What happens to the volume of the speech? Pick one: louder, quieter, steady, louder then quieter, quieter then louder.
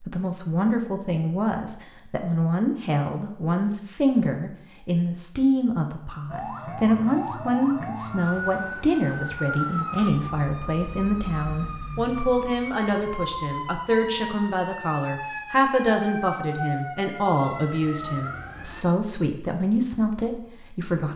steady.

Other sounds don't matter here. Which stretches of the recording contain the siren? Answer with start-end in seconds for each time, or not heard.
6.2-18.9.